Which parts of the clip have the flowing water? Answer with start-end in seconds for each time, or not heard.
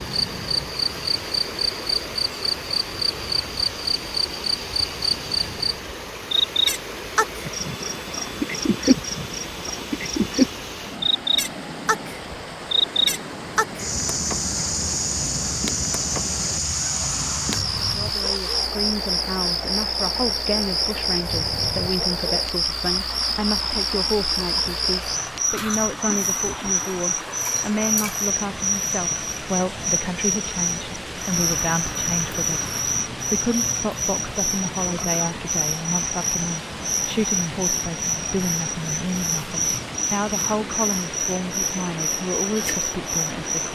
0.0-43.7.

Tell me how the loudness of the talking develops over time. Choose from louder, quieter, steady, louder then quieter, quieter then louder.
steady.